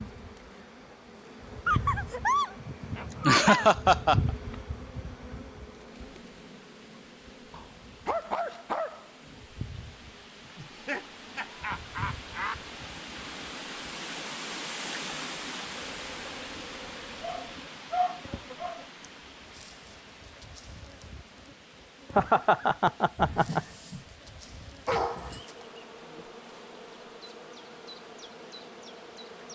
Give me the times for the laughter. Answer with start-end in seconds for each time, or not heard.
2.6-4.3, 10.6-12.6, 22.1-23.6.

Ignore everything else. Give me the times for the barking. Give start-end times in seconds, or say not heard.
1.6-3.6, 7.5-9.3, 17.2-18.8, 23.1-24.1, 24.9-25.4.